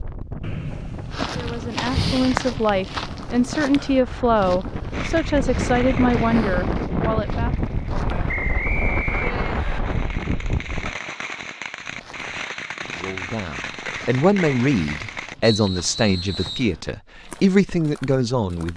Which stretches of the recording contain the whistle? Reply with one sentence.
You can hear the whistle from 0.4 to 1.2 s, from 8.2 to 9.8 s and from 15.4 to 16.7 s.